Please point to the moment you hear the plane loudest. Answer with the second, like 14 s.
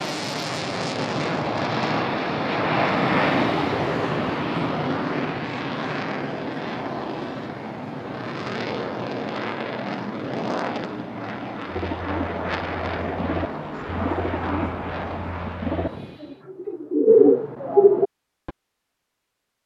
3 s.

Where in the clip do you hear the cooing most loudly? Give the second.
17 s.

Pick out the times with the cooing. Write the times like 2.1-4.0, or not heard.
11.7-18.5.